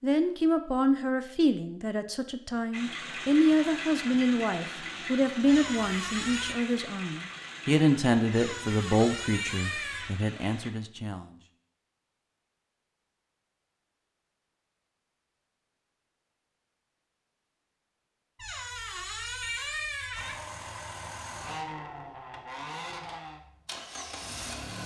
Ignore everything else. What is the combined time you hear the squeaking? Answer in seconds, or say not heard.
5 s.